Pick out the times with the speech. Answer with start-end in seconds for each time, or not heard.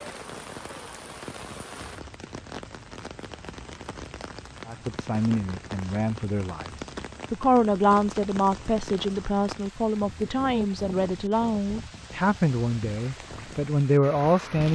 4.7-14.6.